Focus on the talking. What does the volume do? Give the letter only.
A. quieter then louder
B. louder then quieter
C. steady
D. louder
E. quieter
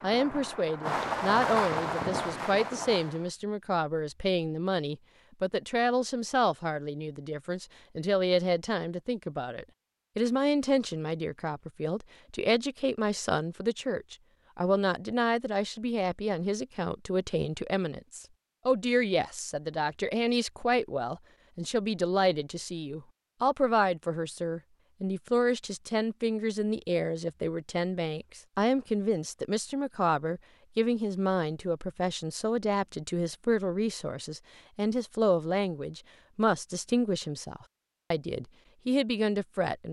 C.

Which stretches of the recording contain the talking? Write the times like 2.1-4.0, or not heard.
0.0-39.8.